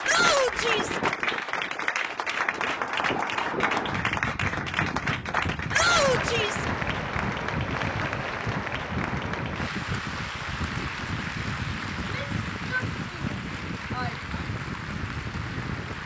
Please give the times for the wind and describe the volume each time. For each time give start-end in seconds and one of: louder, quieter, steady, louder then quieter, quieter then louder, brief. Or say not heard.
0.0-16.0 steady.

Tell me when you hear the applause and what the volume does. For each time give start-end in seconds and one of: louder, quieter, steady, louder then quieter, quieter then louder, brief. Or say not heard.
0.0-16.0 quieter.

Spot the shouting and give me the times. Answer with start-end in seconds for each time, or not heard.
0.1-1.0, 5.7-6.7, 11.9-14.4.